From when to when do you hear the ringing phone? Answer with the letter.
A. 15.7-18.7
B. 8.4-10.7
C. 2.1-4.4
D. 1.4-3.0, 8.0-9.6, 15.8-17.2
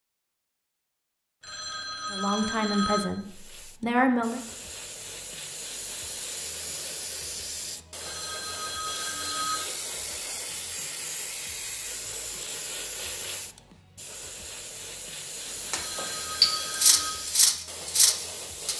D.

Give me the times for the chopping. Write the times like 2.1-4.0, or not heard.
not heard.